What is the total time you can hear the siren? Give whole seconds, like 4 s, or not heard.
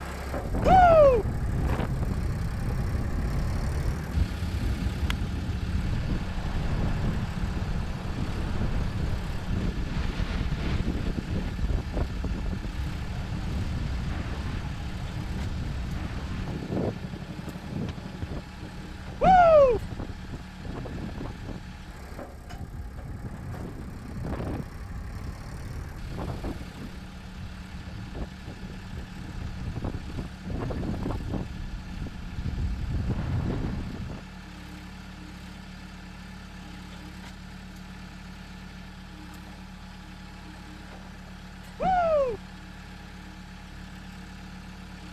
not heard.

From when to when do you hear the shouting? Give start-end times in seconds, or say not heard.
0.7-1.2, 19.2-19.8, 41.8-42.4.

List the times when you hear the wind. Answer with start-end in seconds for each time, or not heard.
0.0-34.2.